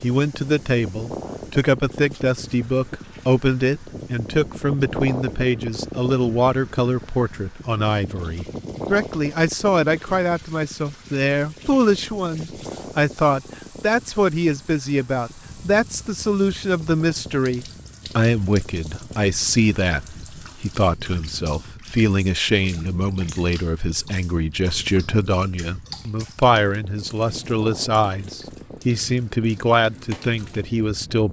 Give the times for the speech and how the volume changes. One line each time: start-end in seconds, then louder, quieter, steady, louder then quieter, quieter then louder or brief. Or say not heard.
0.0-31.2 steady.